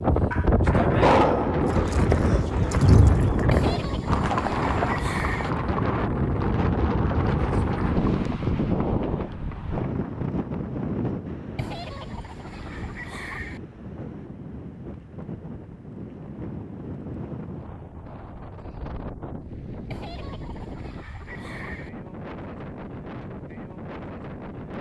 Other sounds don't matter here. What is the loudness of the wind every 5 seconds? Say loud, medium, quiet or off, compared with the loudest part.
loud, loud, medium, quiet, quiet.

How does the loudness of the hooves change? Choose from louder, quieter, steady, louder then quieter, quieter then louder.
quieter.